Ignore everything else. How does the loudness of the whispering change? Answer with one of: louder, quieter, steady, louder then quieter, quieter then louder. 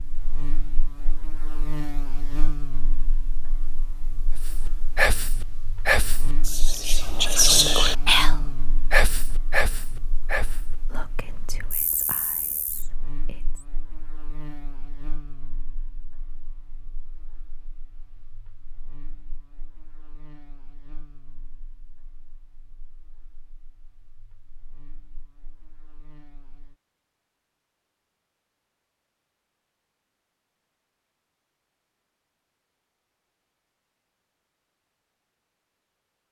quieter.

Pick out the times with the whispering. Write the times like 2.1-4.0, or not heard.
4.3-13.7.